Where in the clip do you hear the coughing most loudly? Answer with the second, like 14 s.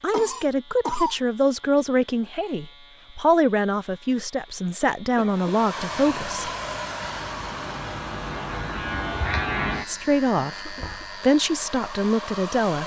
1 s.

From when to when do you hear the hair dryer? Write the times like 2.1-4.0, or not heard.
5.2-12.8.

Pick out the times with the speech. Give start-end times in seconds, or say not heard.
0.0-6.5, 9.8-12.8.